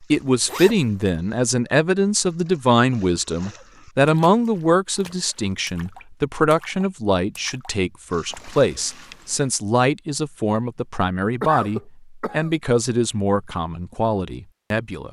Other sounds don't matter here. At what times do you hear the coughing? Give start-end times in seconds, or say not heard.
11.4-12.5.